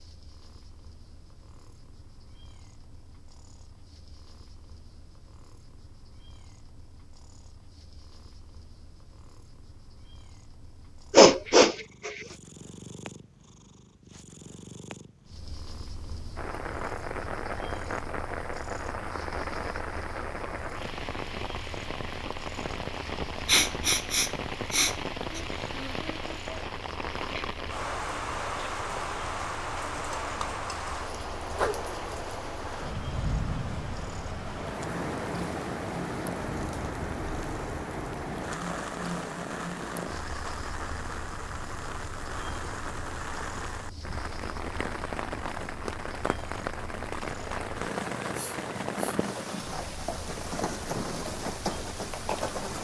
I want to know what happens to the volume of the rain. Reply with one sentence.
The volume of the rain stays about the same.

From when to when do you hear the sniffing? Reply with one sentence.
The sniffing can be heard from 11.1 to 12.2 s, from 23.4 to 25.4 s and from 48.3 to 49.2 s.